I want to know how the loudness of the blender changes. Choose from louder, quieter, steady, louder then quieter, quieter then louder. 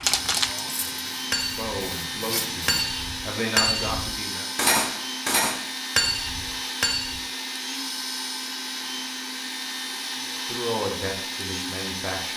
steady.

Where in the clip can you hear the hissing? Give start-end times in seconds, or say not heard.
0.0-2.8.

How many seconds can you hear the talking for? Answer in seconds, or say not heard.
6 s.